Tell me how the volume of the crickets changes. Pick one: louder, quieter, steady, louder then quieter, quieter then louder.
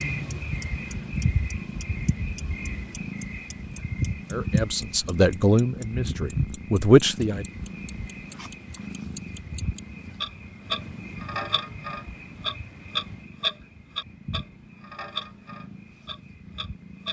quieter.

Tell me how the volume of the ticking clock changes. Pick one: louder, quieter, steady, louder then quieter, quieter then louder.
louder then quieter.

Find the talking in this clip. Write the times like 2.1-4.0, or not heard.
4.3-7.5.